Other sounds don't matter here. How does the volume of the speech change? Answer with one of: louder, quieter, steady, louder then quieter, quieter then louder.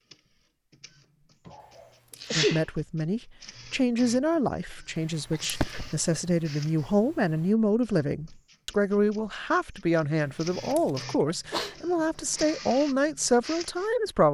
steady.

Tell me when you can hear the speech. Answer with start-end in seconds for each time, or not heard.
2.4-14.2.